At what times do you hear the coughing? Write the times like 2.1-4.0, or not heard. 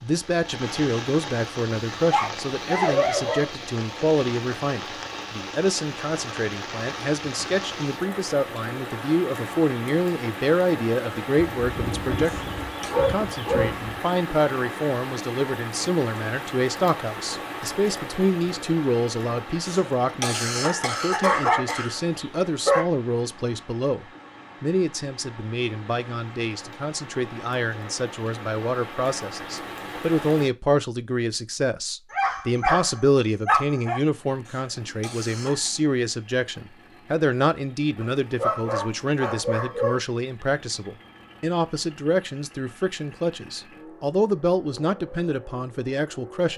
12.2-12.9, 19.6-22.0, 34.5-35.7.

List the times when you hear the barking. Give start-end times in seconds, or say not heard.
2.1-3.5, 11.4-14.0, 21.2-22.9, 32.1-34.0, 38.0-40.0.